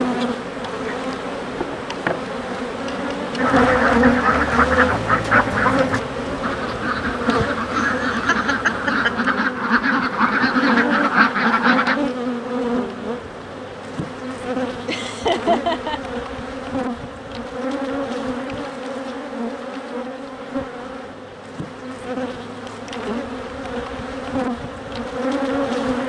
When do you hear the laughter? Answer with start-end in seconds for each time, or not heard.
7.7-9.3, 14.8-16.0.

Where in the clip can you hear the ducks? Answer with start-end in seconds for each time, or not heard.
3.4-12.0.